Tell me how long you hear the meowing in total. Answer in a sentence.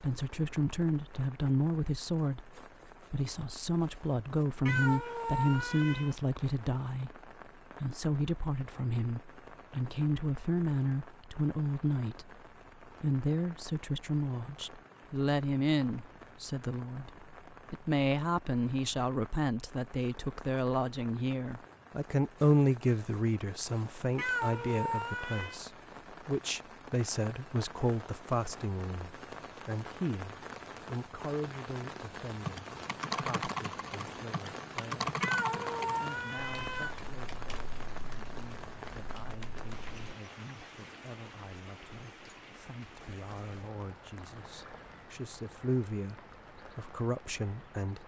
You can hear the meowing for 5 seconds altogether.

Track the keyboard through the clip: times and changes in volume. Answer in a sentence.
You can hear the keyboard from 32.5 to 40.1 s, getting quieter.